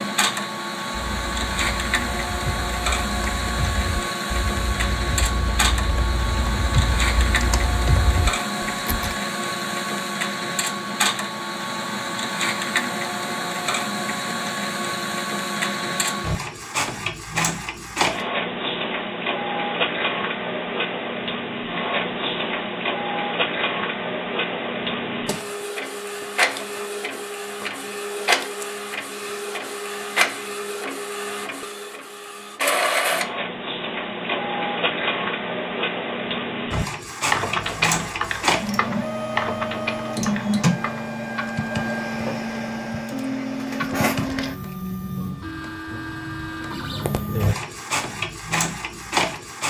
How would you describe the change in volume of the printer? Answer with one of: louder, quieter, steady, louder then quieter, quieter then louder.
steady.